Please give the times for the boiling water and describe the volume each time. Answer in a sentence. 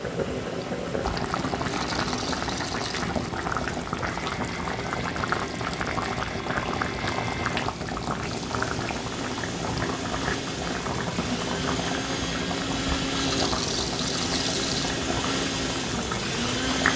You can hear the boiling water from 0.0 to 16.9 s, at a steady volume.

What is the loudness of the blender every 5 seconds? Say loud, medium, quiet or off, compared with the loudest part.
medium, medium, loud, loud.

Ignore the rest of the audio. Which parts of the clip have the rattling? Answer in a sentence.
The rattling can be heard from 1.6 to 3.0 s and from 13.3 to 14.9 s.